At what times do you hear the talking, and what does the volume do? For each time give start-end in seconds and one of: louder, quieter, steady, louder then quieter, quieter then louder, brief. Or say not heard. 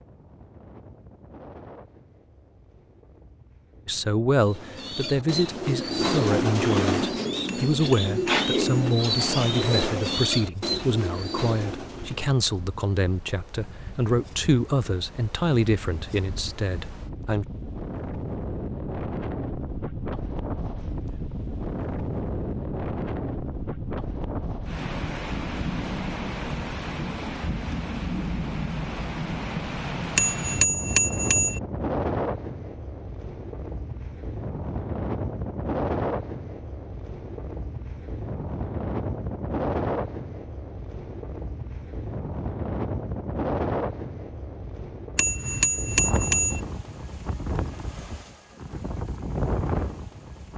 3.9-17.4 steady.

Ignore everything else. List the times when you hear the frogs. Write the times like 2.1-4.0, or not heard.
not heard.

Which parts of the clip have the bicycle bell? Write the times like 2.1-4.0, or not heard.
7.5-8.9, 30.1-31.6, 45.1-46.6.